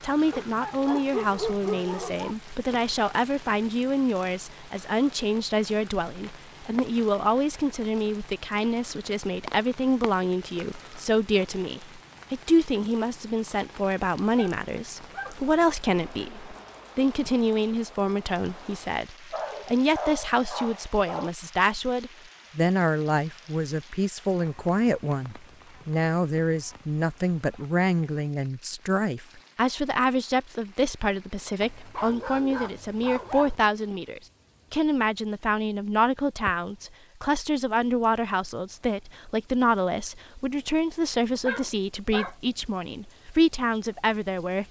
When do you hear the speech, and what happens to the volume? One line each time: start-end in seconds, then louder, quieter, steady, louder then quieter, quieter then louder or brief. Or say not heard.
0.0-44.6 steady.